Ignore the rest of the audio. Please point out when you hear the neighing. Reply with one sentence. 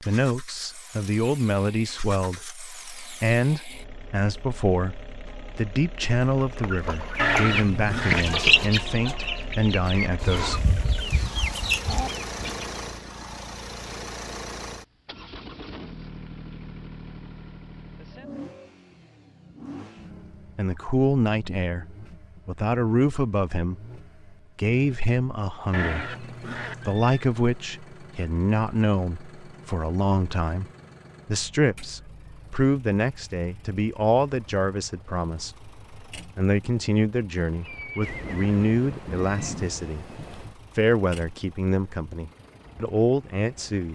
You can hear the neighing from 7.2 to 8.4 s, from 25.7 to 27.2 s and from 37.5 to 39.5 s.